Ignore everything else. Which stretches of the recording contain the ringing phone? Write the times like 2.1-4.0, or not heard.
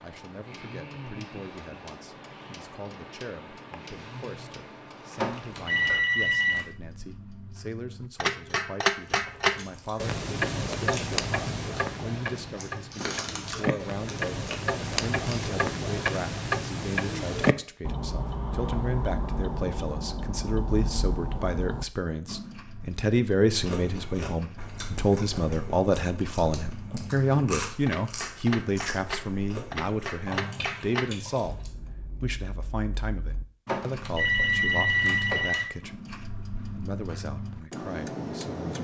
5.2-6.7, 33.6-35.6.